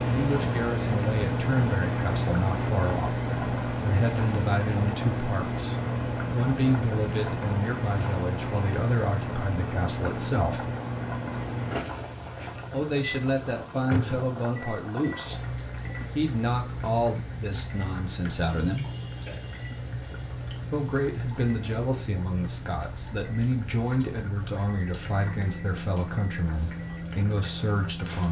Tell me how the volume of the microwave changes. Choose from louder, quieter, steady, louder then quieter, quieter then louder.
quieter.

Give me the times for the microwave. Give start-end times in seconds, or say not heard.
0.0-28.2.